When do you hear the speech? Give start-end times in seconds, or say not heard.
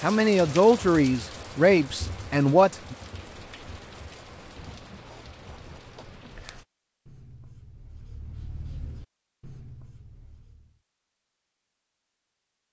0.0-3.0.